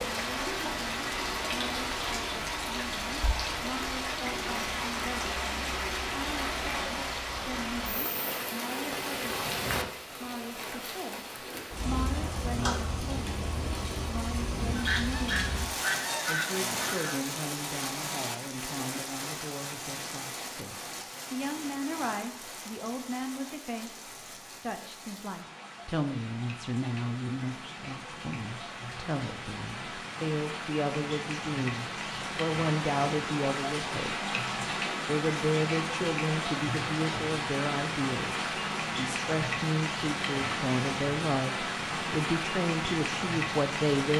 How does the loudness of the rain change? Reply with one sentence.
The volume of the rain goes down, then up.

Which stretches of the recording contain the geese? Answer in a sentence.
The geese can be heard from 14.8 to 17.2 s.